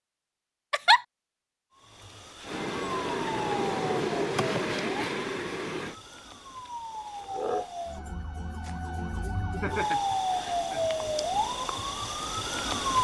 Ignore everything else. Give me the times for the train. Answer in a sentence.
You can hear the train from 2.4 to 6.0 s.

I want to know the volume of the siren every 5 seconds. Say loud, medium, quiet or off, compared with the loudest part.
medium, medium, loud.